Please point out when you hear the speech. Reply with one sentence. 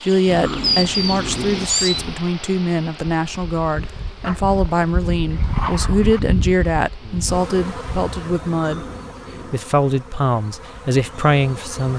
The speech can be heard from 0.0 to 8.8 s and from 9.5 to 11.9 s.